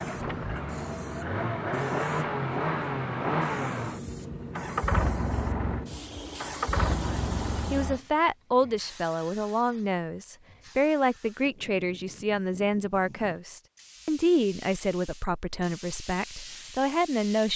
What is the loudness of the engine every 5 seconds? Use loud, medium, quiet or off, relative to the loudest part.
loud, loud, off, off.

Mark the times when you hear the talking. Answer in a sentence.
You can hear the talking from 6.8 to 17.5 s.